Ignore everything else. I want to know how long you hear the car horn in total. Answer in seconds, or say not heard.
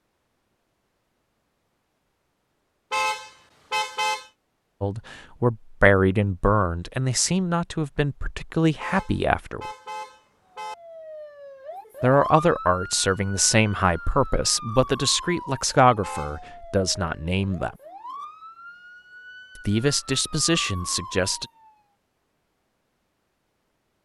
4 s.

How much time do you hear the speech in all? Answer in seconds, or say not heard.
12 s.